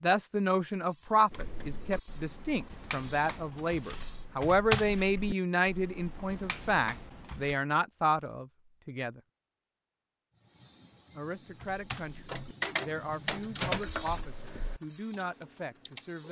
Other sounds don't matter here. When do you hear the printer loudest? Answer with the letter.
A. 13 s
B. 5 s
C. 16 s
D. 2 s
A.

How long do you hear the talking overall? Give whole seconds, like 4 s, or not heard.
14 s.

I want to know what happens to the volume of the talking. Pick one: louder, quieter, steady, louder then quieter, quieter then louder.
quieter.